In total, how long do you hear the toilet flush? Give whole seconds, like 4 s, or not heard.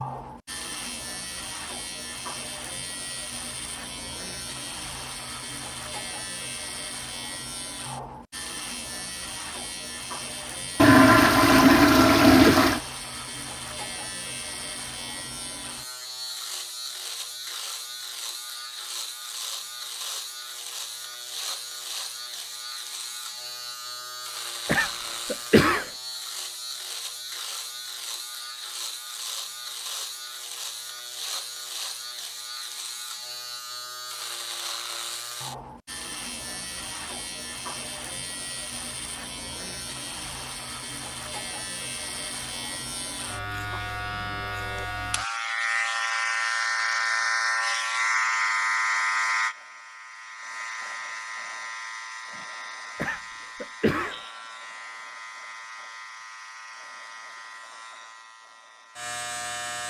2 s.